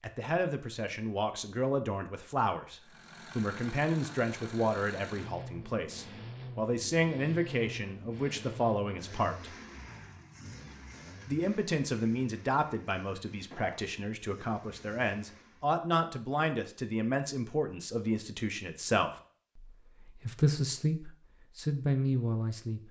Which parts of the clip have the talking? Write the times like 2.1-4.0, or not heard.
0.0-9.6, 11.2-22.8.